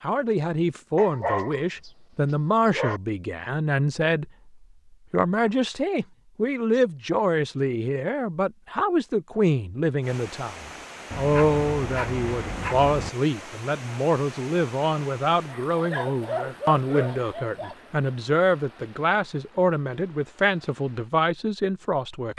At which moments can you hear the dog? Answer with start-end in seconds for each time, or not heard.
0.9-3.0, 11.1-13.1, 15.4-17.8.